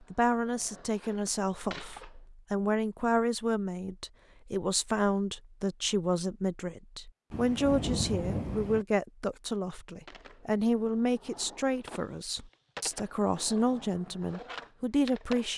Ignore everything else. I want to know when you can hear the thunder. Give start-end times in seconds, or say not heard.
7.3-8.8.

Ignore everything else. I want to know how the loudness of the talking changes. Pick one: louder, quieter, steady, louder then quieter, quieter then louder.
steady.